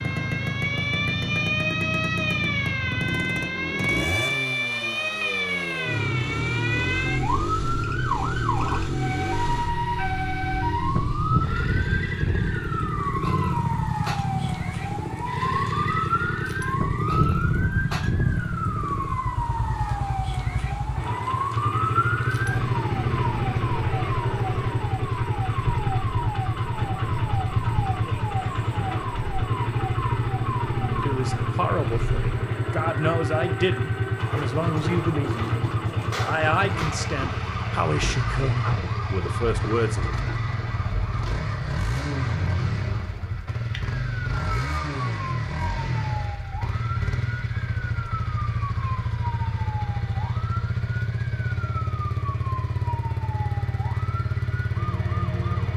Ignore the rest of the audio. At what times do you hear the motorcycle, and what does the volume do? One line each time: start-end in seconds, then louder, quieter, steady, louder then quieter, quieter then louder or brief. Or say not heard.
0.0-55.7 steady.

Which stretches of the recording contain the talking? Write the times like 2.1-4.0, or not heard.
31.0-40.1.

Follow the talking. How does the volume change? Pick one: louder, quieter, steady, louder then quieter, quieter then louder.
steady.